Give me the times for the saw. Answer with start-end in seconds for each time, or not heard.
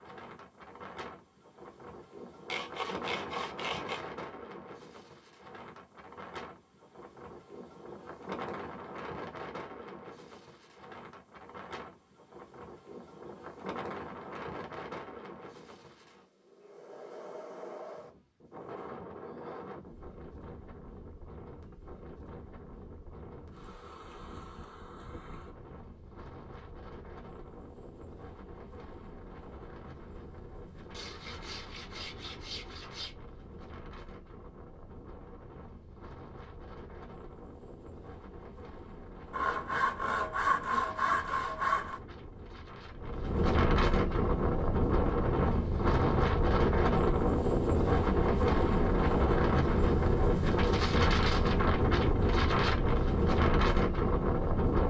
2.5-4.0, 30.9-33.1, 39.3-42.0.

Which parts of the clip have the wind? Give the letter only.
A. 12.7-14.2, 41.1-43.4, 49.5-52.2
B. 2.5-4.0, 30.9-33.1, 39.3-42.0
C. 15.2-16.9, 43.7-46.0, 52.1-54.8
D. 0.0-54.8
D.